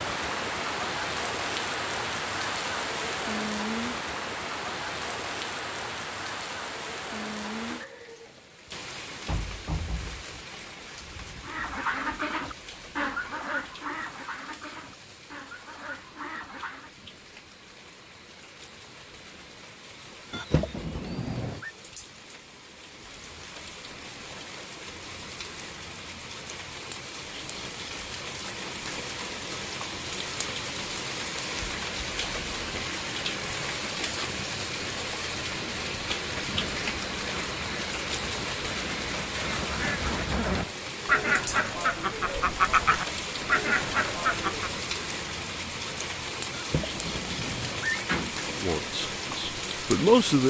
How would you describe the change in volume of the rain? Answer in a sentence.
The volume of the rain goes down, then up.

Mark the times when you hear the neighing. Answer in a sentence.
The neighing can be heard from 20.3 to 21.7 s and from 46.5 to 48.0 s.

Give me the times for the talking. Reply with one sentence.
The talking can be heard from 48.5 to 50.4 s.